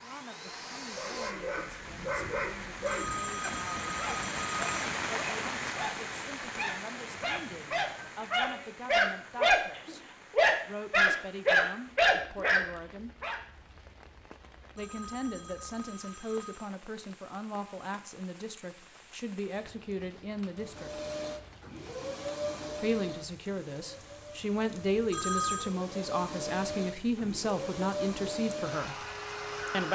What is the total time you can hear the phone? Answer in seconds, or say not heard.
5 s.